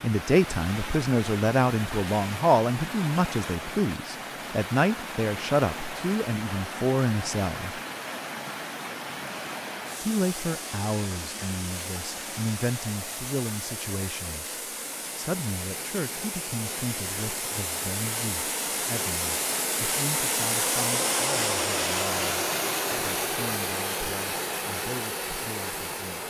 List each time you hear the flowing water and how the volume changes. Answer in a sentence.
The flowing water can be heard from 0.0 to 26.2 s, getting louder.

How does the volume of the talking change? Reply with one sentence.
The loudness of the talking goes down.